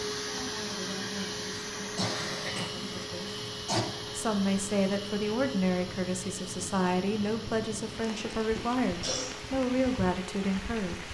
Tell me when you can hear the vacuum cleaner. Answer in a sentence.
You can hear the vacuum cleaner from 0.0 to 11.0 s.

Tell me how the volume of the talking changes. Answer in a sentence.
The loudness of the talking goes up.